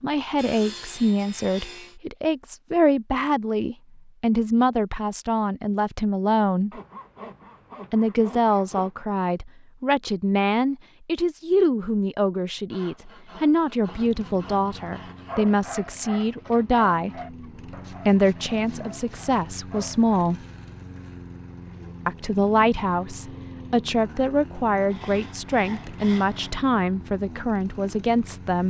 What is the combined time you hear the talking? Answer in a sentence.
You can hear the talking for 25 seconds altogether.